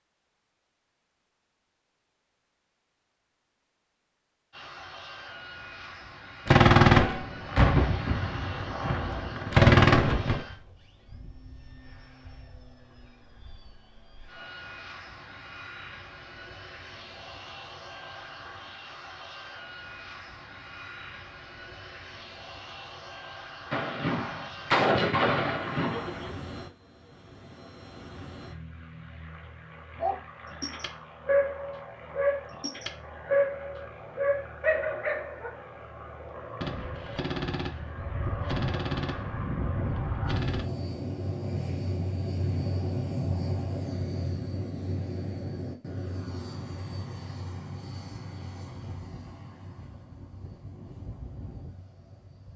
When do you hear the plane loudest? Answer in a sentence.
The volume of the plane peaks at 43 seconds.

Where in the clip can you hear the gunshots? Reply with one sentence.
The gunshots can be heard from 6.5 to 10.4 s, from 23.7 to 26.3 s and from 36.6 to 40.6 s.